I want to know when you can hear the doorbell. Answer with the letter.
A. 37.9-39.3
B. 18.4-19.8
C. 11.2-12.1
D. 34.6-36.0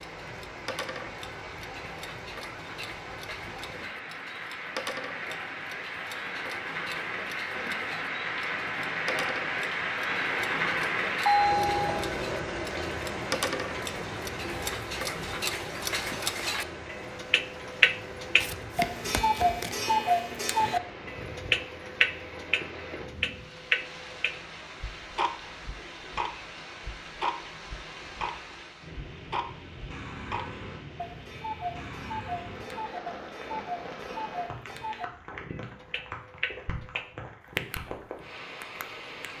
C.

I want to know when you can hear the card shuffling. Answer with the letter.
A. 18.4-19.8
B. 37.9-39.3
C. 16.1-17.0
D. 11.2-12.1
A.